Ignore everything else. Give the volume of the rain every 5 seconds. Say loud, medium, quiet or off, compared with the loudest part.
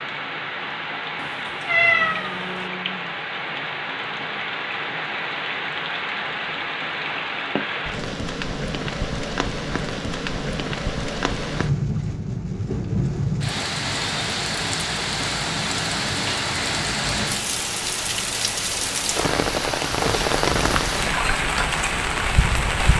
medium, medium, loud, loud, loud.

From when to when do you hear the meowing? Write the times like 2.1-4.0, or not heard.
1.1-2.6.